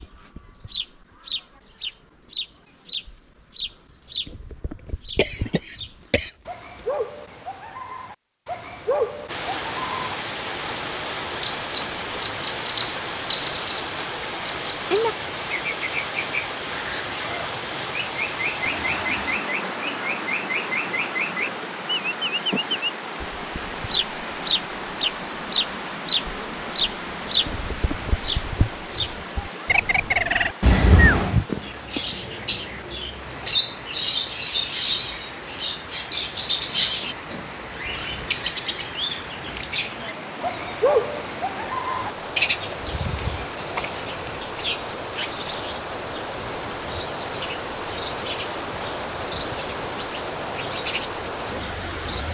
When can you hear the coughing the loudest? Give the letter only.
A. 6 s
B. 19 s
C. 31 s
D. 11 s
C.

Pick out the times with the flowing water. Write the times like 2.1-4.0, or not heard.
9.2-52.2.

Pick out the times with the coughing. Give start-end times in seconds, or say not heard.
5.2-6.3, 30.6-31.4.